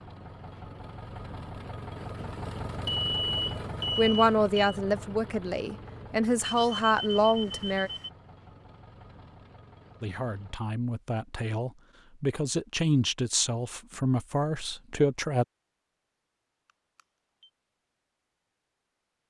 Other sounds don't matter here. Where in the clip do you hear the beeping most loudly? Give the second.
3 s.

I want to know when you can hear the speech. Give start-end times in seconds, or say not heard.
4.0-7.9, 10.0-15.4.